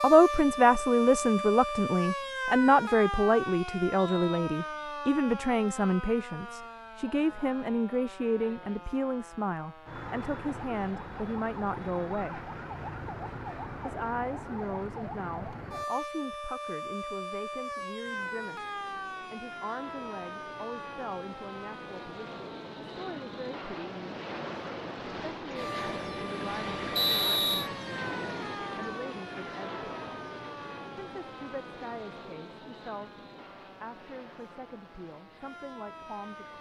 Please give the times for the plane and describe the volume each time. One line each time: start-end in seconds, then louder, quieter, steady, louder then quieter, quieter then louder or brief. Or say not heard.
18.0-36.5 louder then quieter.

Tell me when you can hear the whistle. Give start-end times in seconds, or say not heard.
4.0-5.0, 26.9-27.7.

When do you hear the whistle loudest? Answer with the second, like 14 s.
27 s.